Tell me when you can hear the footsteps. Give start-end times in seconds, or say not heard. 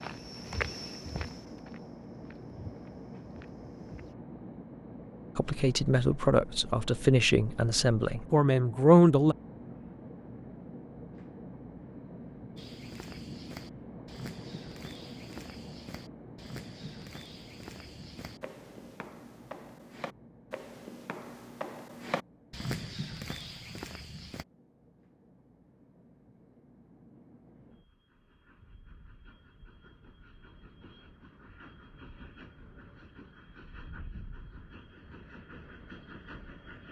0.0-4.2, 12.6-24.4.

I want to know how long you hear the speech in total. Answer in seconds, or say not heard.
4 s.